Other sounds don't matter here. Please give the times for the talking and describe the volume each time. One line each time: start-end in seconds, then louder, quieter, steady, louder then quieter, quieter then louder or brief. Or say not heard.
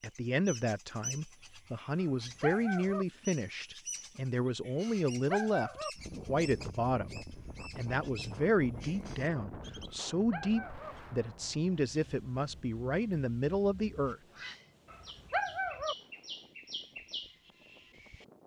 0.0-14.2 steady.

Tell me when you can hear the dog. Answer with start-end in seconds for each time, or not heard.
2.0-3.0, 4.8-5.9, 9.8-10.9, 14.9-15.9.